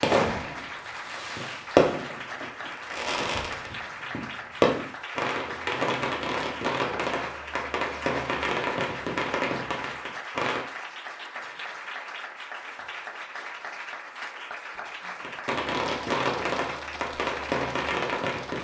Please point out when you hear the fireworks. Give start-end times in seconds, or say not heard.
0.0-10.7, 15.2-18.6.